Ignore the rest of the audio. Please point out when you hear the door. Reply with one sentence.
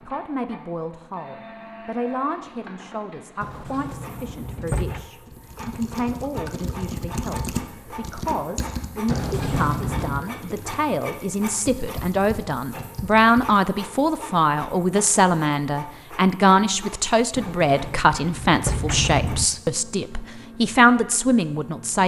You can hear the door from 3.4 to 5.0 s, from 9.1 to 10.2 s and from 17.4 to 19.4 s.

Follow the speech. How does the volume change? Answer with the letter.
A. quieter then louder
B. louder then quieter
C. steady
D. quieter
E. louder
E.